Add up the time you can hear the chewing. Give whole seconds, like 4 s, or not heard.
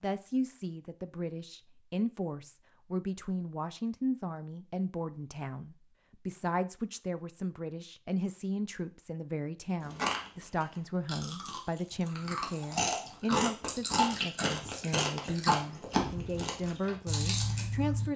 8 s.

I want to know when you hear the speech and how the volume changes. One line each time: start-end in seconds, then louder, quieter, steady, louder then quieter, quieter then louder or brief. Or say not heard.
0.0-18.1 steady.